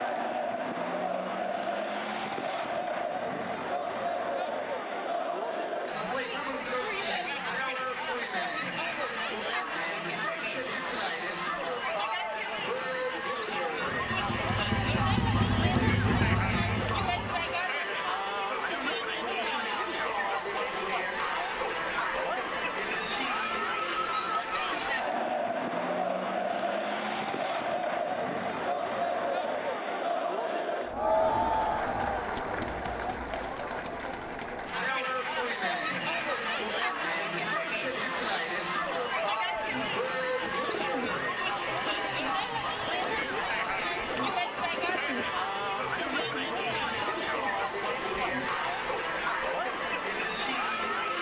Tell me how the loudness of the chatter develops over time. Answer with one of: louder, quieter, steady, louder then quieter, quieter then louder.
steady.